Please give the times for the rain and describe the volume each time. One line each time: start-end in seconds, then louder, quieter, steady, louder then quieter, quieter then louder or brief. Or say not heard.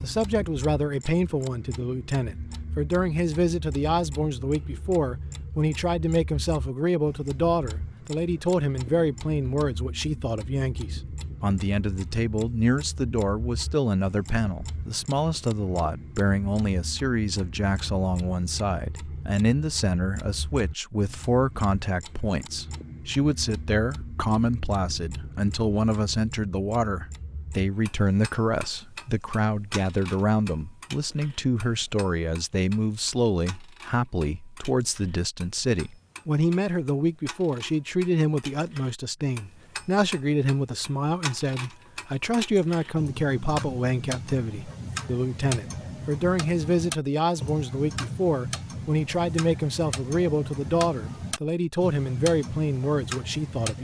not heard.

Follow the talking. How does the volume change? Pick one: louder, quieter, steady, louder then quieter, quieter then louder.
steady.